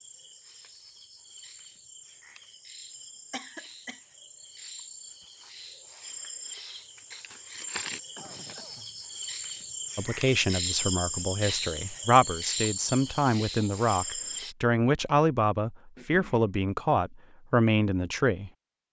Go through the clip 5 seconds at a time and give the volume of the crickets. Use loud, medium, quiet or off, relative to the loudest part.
quiet, medium, loud, off.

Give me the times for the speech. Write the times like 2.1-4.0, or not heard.
9.9-18.5.